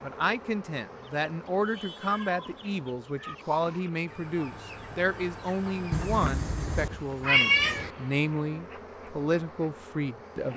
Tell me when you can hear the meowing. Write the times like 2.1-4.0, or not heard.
2.0-3.4, 5.9-7.9.